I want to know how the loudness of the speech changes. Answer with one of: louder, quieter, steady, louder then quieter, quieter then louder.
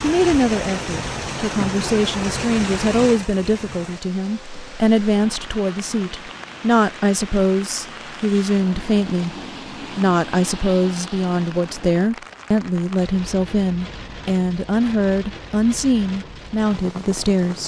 steady.